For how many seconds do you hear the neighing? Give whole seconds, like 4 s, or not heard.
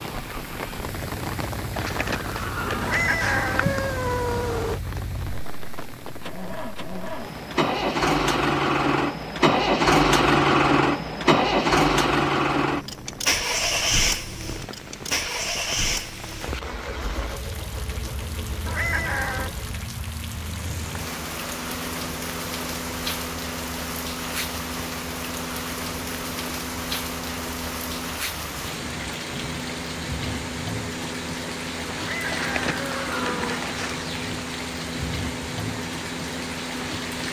4 s.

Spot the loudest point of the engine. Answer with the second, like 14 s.
10 s.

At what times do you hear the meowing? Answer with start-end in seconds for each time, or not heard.
2.8-4.8, 18.6-19.6, 31.9-33.6.